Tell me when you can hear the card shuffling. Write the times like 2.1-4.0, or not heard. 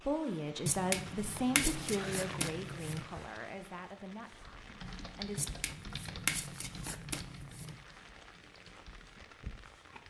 0.7-3.0, 5.3-7.8.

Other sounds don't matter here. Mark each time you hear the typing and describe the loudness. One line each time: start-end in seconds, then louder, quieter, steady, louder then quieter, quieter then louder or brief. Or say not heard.
4.5-10.0 quieter then louder.